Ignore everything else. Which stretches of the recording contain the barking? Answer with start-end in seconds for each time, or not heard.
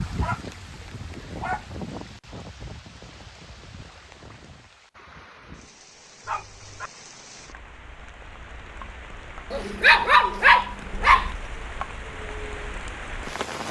0.1-1.6, 6.2-6.9, 9.5-11.3.